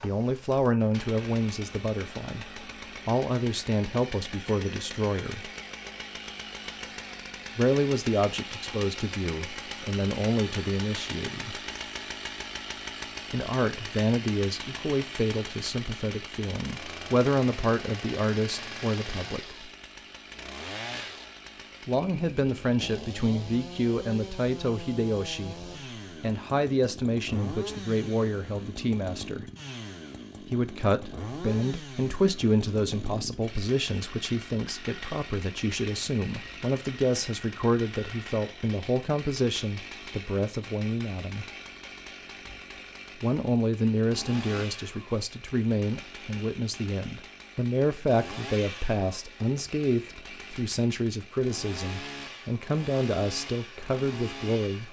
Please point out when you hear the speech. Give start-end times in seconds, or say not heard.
0.0-5.5, 7.5-11.6, 13.3-19.7, 21.9-29.4, 30.4-41.5, 43.1-54.8.